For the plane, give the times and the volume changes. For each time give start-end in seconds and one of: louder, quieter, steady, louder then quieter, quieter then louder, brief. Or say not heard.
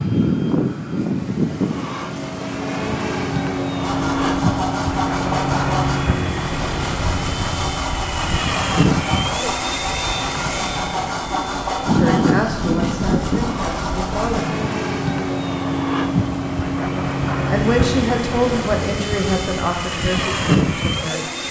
0.0-21.4 steady.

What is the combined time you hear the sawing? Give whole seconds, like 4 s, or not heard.
11 s.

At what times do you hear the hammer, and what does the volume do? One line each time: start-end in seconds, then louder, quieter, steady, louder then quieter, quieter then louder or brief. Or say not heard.
not heard.